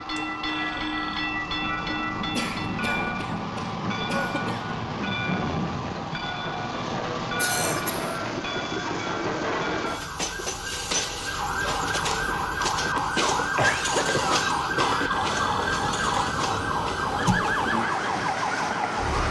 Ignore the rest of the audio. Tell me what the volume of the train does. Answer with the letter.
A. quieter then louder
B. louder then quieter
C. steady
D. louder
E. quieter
C.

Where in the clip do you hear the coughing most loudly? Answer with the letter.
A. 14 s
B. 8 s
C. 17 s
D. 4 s
A.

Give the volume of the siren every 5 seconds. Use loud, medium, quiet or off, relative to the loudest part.
medium, medium, loud, loud.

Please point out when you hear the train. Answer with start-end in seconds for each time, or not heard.
0.0-19.2.